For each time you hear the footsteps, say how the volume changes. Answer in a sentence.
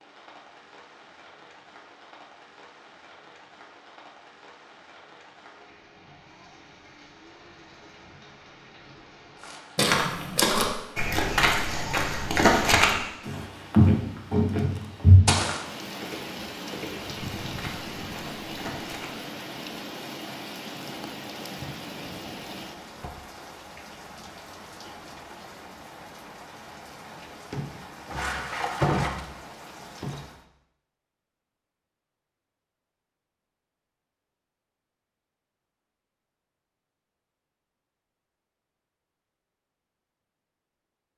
The footsteps can be heard from 9.4 to 19.1 s, getting quieter.